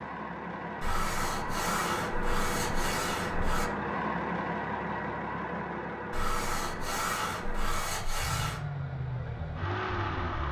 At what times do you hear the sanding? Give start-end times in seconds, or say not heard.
0.8-3.7, 6.1-8.6.